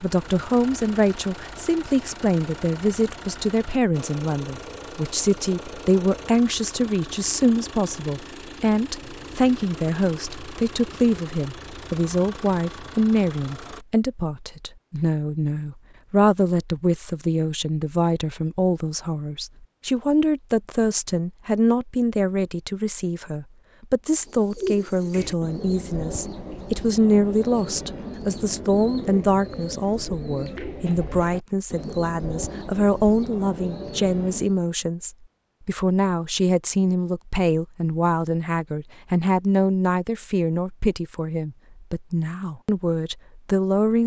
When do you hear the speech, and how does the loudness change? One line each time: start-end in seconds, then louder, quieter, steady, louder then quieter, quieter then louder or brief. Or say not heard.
0.0-44.0 steady.